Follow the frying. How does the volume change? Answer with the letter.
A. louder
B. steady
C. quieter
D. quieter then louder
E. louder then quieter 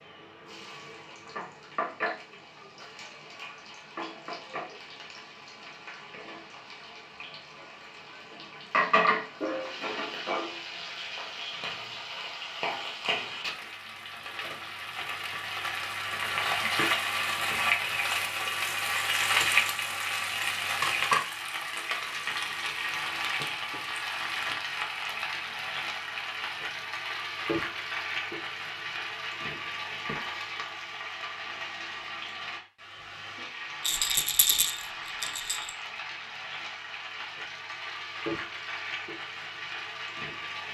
E.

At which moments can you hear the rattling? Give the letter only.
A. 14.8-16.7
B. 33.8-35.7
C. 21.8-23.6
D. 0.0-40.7
B.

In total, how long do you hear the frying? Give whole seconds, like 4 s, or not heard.
41 s.